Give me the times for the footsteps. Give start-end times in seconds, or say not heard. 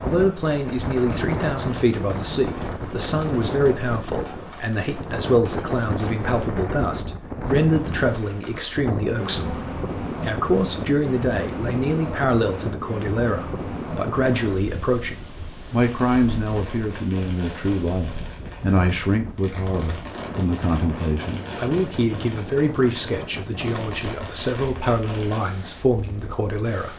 not heard.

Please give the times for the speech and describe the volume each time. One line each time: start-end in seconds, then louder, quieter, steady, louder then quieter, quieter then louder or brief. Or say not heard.
0.0-26.9 steady.